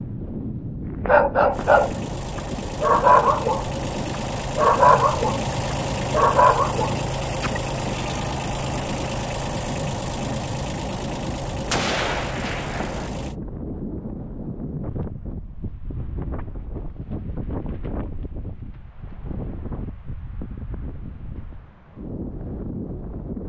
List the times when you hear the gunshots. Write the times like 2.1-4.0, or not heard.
11.7-13.1.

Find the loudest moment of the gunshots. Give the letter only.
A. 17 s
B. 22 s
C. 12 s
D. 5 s
C.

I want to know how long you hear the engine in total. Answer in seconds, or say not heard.
12 s.